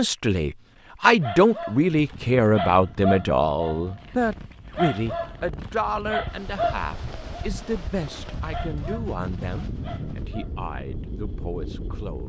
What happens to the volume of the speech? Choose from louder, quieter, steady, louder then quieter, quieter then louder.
quieter.